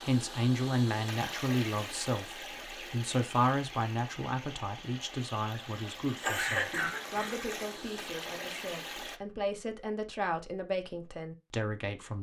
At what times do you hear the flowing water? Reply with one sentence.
You can hear the flowing water from 0.0 to 9.2 s.